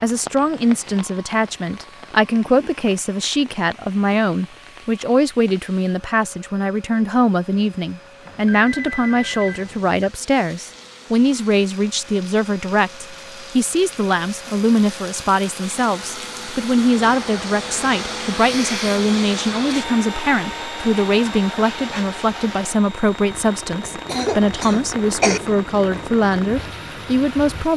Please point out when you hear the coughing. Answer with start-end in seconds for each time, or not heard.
24.1-25.4.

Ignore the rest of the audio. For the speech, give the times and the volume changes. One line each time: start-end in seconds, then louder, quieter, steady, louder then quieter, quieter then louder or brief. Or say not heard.
0.0-27.7 steady.